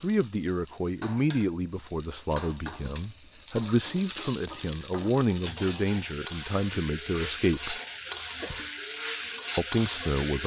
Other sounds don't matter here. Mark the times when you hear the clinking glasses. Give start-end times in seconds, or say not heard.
not heard.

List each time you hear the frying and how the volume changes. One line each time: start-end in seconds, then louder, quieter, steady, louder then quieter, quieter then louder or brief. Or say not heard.
0.0-10.4 louder.